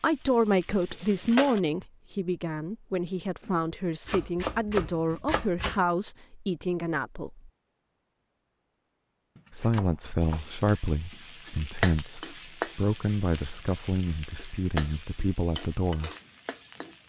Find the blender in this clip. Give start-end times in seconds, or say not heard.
not heard.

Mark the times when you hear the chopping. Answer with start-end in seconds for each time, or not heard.
4.0-5.8, 9.3-11.3.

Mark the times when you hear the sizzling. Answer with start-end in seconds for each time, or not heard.
0.0-1.6, 10.2-17.0.